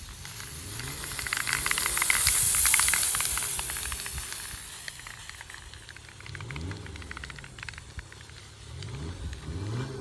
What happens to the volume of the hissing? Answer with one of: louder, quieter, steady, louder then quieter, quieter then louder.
quieter.